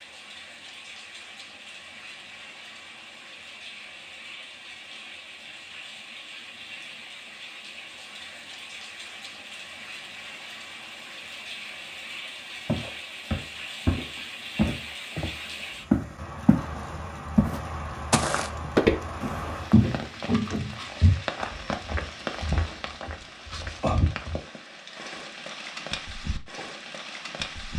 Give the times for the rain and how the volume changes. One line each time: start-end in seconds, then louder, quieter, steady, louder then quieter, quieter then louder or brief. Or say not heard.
0.0-27.7 louder.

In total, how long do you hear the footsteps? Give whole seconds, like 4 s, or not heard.
11 s.